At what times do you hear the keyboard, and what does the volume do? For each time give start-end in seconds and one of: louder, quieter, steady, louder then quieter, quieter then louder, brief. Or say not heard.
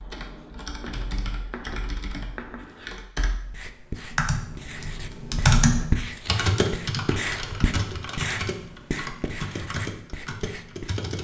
0.0-11.1 louder then quieter.